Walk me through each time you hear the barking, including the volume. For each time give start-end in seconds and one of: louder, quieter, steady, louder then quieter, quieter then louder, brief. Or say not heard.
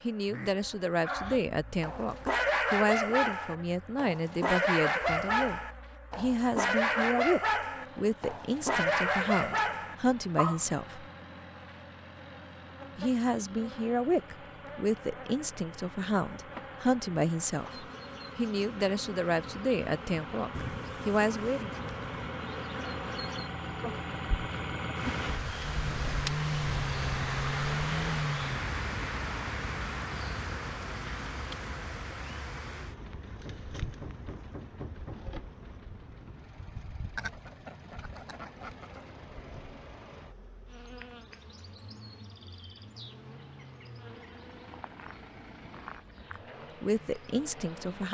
1.0-10.6 steady.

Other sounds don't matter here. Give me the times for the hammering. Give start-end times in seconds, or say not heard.
33.5-35.3.